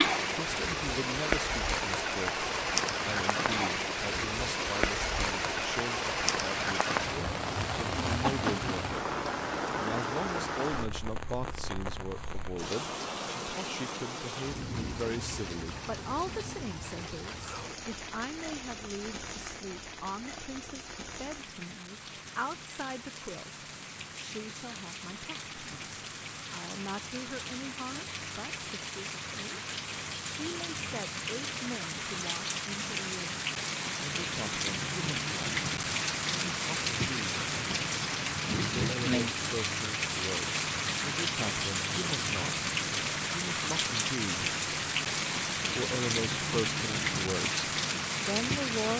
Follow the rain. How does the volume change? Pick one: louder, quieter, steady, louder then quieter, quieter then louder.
quieter then louder.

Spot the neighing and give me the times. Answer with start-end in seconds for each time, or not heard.
not heard.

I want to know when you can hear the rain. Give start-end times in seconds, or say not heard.
0.0-48.9.